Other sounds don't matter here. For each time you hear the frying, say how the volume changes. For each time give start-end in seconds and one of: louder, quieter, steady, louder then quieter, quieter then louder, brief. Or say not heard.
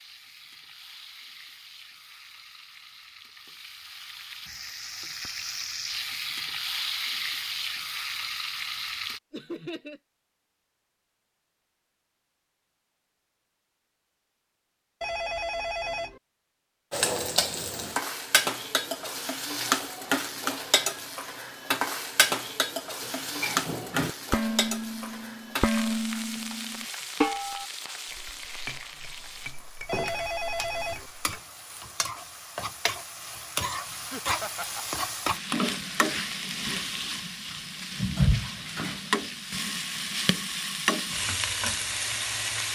0.0-9.2 louder
16.9-42.7 quieter then louder.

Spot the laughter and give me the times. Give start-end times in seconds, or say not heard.
9.3-10.0, 34.0-35.0.